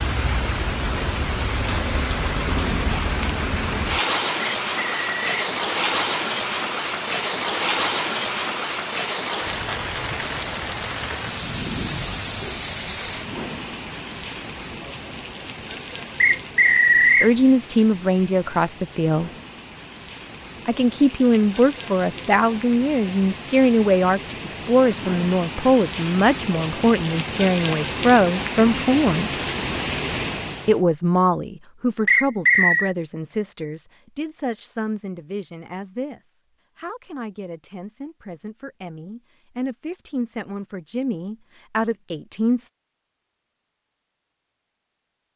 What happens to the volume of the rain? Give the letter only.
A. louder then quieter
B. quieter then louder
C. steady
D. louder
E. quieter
B.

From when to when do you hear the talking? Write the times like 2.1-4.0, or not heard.
17.0-19.3, 20.6-29.3, 30.6-42.7.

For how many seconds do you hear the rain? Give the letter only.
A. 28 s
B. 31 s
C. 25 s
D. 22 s
B.